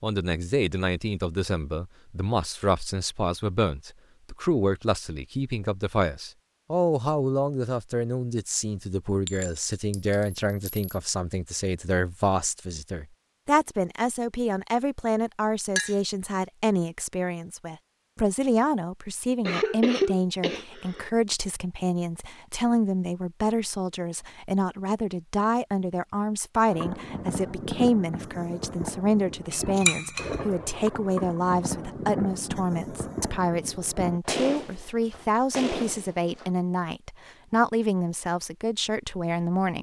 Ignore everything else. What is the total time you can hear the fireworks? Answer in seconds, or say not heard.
10 s.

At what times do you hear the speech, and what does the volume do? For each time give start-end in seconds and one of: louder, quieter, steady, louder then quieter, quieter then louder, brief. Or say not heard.
0.0-39.7 steady.